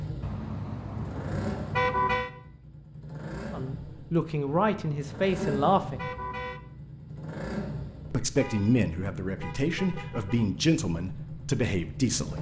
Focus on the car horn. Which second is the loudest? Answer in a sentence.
The loudest moment of the car horn is at 2 seconds.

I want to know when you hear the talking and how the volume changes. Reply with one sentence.
You can hear the talking briefly from 3.5 to 6.1 s; and from 8.1 to 12.3 s, at a steady volume.